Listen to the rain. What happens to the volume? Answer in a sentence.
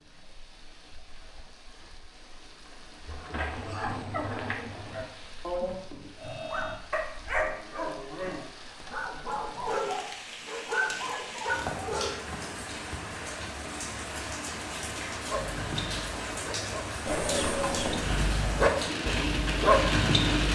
The loudness of the rain goes up.